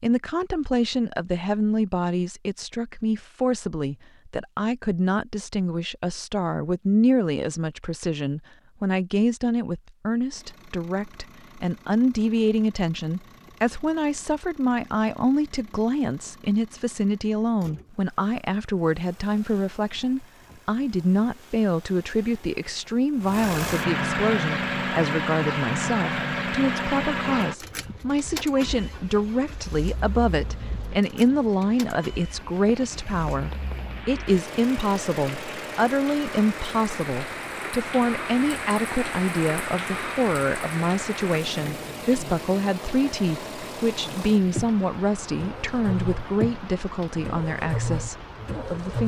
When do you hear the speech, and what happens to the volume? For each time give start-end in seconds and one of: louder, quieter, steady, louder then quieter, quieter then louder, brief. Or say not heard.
0.0-49.0 steady.